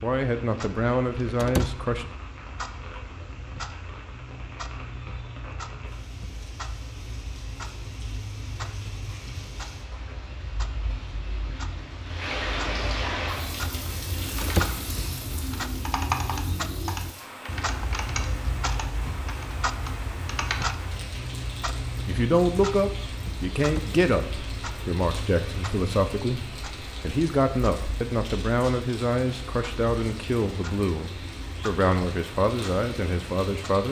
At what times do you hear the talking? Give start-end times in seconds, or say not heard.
0.0-2.0, 22.1-33.8.